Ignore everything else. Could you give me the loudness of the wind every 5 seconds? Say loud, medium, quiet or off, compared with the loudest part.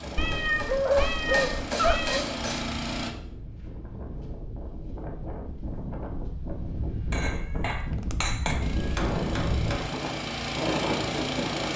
medium, loud, loud.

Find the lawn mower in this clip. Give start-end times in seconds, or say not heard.
0.0-3.1, 8.6-11.7.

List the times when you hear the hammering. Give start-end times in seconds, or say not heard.
0.0-2.6, 7.1-10.0.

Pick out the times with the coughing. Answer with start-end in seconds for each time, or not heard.
not heard.